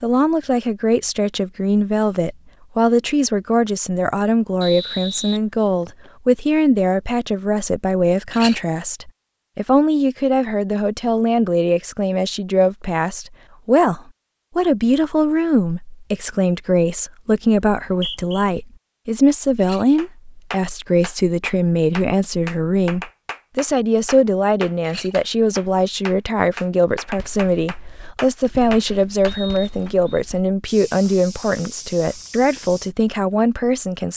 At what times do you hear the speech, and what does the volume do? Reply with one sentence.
You can hear the speech from 0.0 to 34.1 s, at a steady volume.